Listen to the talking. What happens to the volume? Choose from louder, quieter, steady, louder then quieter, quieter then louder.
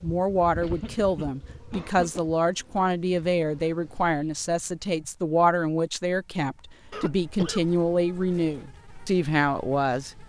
steady.